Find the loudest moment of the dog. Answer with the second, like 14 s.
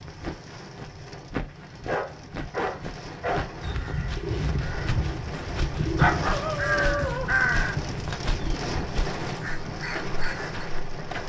6 s.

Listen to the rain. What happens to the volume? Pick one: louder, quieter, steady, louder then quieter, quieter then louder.
louder.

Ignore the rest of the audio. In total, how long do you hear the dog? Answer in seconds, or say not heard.
4 s.